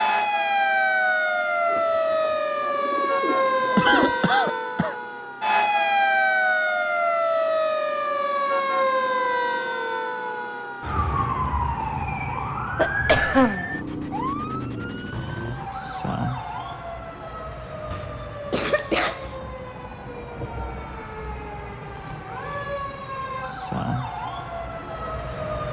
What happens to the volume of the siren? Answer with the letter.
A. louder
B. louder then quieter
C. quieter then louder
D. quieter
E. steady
D.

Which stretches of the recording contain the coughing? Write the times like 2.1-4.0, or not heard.
3.8-5.0, 11.8-13.7, 17.9-19.2.